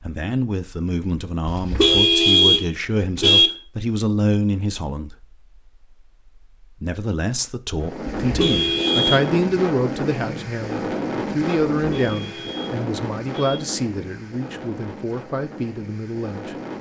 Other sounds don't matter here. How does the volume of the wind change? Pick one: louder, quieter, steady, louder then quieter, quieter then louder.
quieter.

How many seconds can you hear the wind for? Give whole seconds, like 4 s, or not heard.
9 s.